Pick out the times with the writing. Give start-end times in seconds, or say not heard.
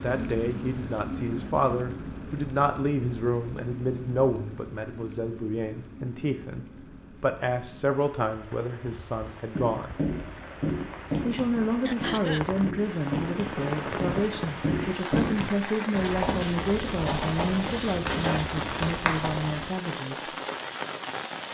9.2-19.7.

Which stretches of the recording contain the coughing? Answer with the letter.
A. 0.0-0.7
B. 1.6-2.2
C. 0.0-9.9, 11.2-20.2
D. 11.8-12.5
D.